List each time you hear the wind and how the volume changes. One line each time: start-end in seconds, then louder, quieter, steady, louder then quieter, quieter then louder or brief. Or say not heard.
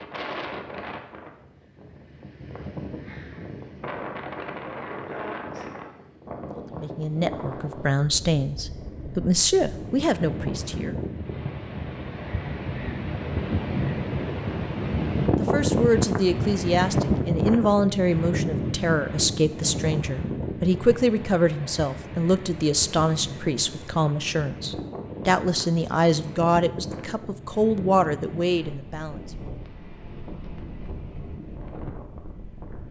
0.0-32.8 louder then quieter.